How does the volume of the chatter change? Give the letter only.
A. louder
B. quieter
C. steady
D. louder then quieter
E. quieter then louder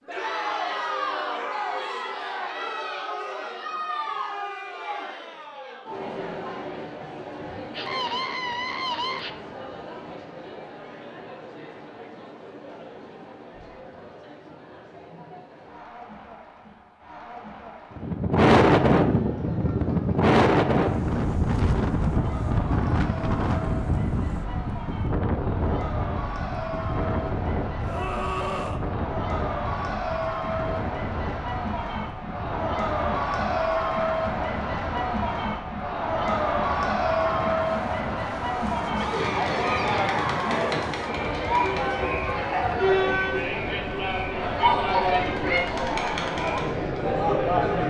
E.